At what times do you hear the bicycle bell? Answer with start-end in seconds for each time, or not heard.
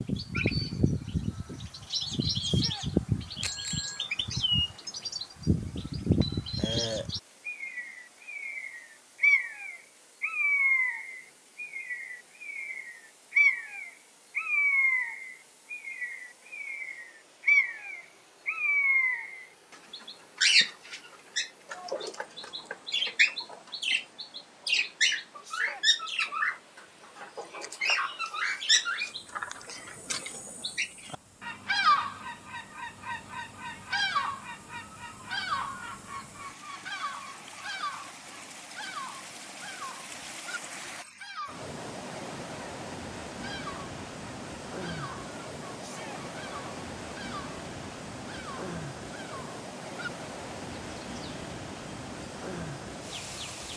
3.4-4.0.